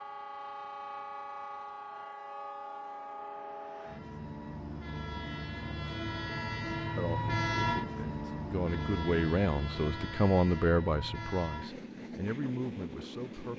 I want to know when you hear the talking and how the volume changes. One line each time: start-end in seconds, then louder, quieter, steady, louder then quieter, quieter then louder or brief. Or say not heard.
6.8-13.5 louder then quieter.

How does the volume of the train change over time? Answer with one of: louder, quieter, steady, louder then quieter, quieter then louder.
louder then quieter.